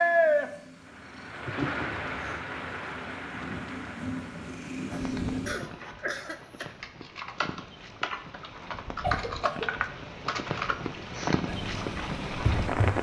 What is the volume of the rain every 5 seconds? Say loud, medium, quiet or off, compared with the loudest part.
loud, quiet, loud.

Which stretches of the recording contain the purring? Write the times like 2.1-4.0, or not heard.
0.0-5.5, 11.4-12.9.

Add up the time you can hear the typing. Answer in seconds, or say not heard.
8 s.